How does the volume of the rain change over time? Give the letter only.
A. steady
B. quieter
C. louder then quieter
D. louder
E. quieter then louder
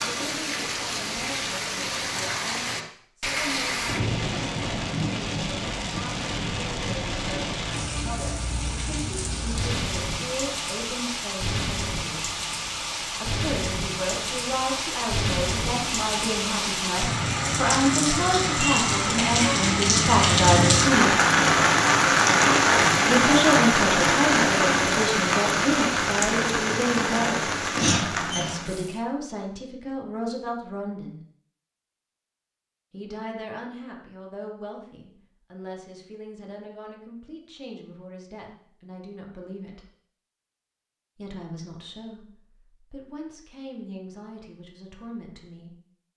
D.